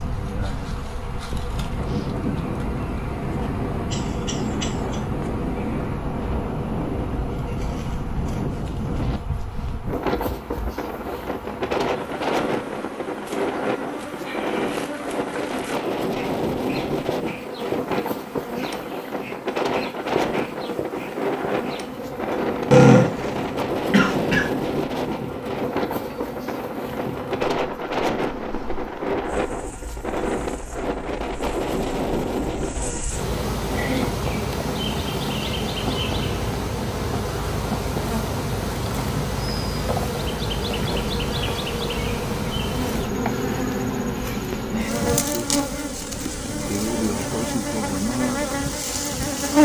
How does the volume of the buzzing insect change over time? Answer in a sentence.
The volume of the buzzing insect goes up.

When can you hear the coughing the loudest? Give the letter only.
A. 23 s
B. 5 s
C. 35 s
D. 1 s
A.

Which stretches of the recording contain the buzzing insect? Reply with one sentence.
You can hear the buzzing insect from 0.0 to 49.6 s.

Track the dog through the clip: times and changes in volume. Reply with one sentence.
You can't hear the dog here.